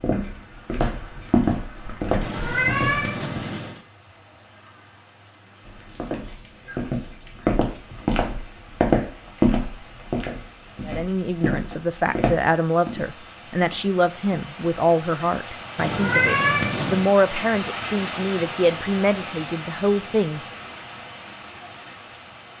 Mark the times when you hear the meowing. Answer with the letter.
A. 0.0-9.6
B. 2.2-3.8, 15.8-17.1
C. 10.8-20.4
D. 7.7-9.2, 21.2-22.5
B.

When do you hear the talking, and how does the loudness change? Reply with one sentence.
You can hear the talking from 10.8 to 20.4 s, at a steady volume.